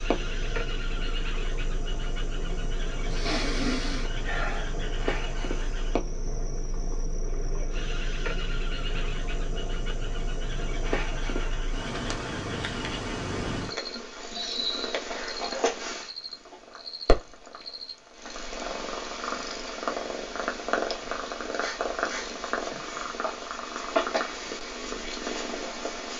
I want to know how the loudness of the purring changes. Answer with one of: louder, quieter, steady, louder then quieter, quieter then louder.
louder.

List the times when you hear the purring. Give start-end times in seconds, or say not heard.
0.0-26.1.